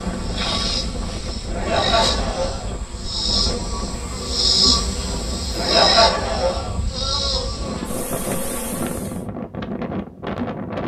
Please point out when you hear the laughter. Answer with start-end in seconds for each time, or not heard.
1.5-2.8, 5.5-6.8.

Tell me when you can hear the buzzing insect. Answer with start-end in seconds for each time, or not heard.
0.0-9.2.